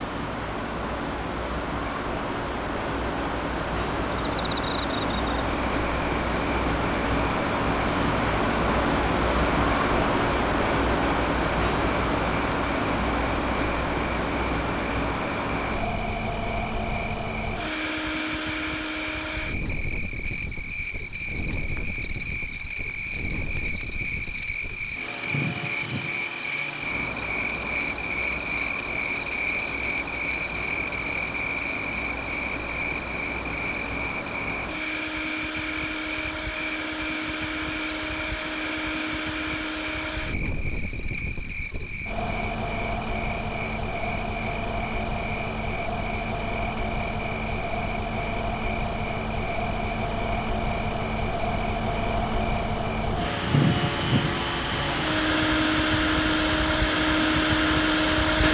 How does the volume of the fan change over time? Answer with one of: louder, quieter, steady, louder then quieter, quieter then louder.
quieter then louder.